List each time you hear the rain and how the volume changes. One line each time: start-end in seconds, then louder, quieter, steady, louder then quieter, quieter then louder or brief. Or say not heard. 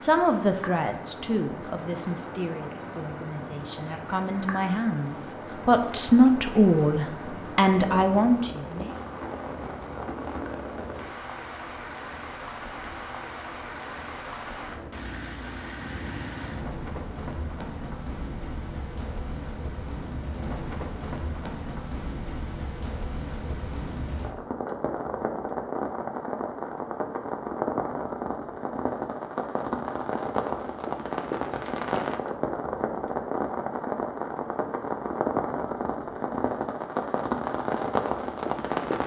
0.0-39.0 louder.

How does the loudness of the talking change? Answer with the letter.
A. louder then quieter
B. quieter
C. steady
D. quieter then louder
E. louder
D.